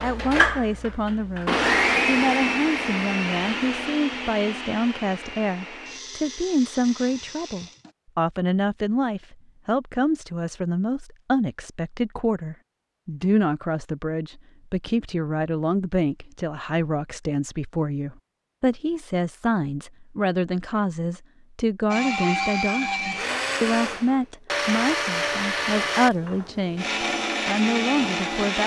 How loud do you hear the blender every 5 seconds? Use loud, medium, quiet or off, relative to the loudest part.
loud, quiet, off, off, loud, loud.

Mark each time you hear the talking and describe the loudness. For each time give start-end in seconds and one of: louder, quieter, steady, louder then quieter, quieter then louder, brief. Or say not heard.
0.0-28.6 steady.